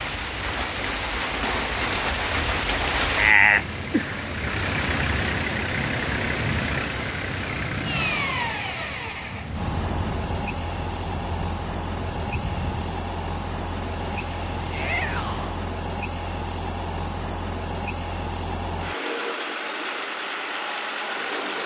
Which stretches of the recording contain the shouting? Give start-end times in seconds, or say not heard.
14.7-15.5.